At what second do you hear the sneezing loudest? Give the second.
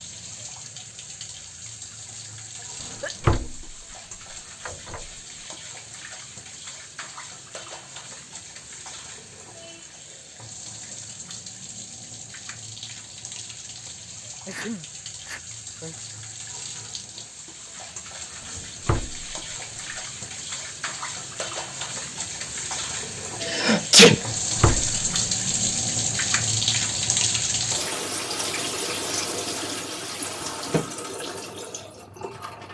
24 s.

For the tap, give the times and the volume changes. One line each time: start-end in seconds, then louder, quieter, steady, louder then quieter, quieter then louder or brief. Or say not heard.
0.0-32.6 louder.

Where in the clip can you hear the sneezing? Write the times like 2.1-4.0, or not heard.
2.6-3.3, 14.4-15.9, 23.4-24.2.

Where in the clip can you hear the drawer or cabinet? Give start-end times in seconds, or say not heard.
2.8-3.8, 4.7-5.1, 18.4-19.3, 24.1-24.9.